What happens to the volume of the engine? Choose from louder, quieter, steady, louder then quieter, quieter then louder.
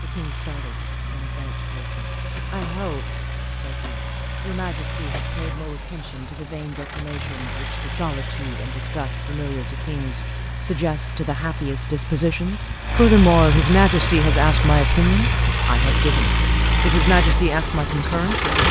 louder.